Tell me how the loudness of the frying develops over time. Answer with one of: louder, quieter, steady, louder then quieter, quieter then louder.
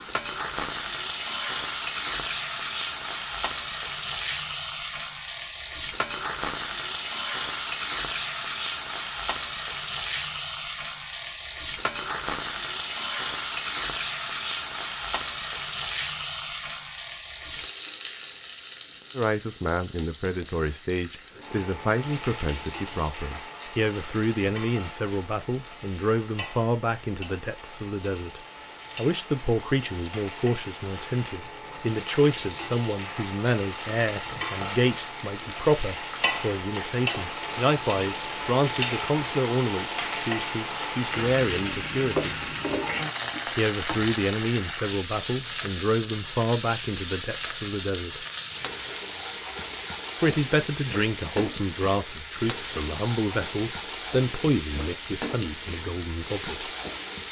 quieter then louder.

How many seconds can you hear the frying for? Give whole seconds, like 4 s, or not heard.
57 s.